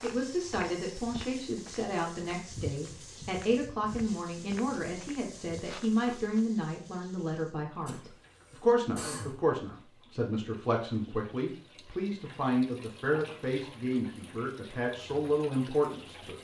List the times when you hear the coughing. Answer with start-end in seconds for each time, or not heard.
7.8-9.4.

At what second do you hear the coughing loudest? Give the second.
9 s.